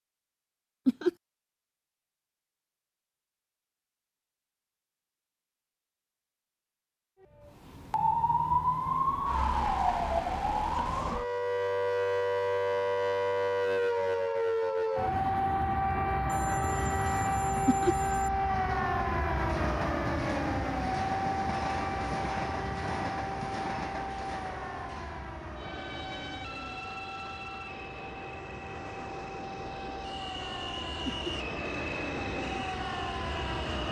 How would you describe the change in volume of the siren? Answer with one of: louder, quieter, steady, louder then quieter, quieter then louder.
quieter.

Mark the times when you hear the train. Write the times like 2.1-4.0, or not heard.
16.6-33.8.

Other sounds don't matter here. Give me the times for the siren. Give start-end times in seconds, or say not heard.
7.4-33.8.